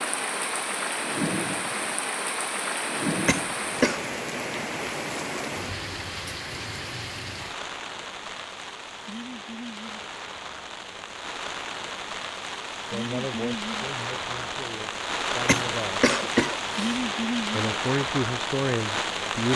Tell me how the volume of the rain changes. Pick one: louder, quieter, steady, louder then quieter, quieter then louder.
quieter then louder.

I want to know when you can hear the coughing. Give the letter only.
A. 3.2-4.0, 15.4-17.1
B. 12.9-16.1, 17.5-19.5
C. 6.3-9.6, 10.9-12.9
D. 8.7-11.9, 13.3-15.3
A.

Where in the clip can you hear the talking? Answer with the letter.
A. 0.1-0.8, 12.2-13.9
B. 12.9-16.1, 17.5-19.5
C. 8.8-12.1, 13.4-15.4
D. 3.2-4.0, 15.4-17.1
B.